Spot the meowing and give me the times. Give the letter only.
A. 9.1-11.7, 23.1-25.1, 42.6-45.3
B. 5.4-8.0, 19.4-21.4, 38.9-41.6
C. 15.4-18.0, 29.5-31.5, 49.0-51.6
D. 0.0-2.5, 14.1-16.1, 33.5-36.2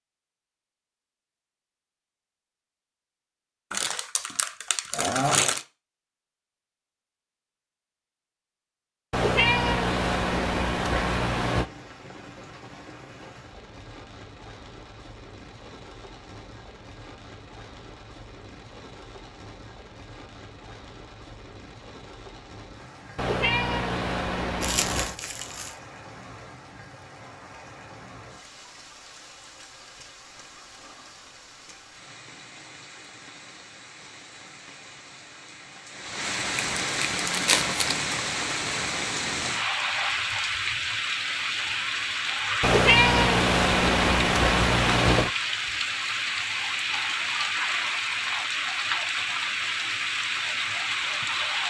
A.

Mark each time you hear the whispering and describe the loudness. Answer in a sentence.
You can't hear the whispering here.